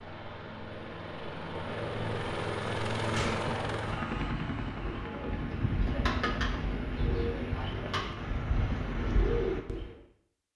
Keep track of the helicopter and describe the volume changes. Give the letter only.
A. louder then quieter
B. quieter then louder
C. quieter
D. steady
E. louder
A.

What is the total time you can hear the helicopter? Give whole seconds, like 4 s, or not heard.
7 s.